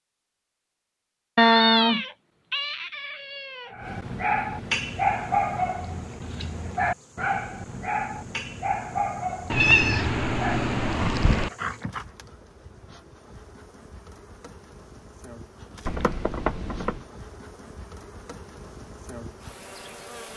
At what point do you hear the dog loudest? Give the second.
5 s.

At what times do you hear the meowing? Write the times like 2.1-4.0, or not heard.
1.4-3.7, 9.5-11.5, 15.8-17.0.